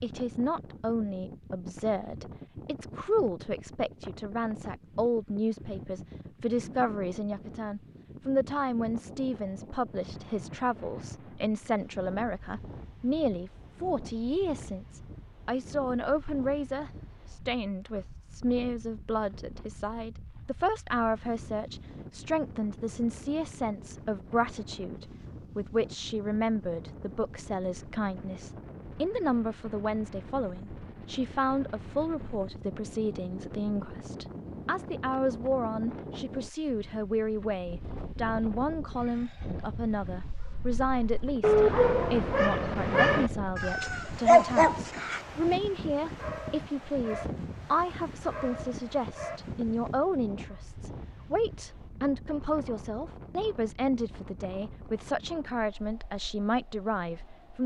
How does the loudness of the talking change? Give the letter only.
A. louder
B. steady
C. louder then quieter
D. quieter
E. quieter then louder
B.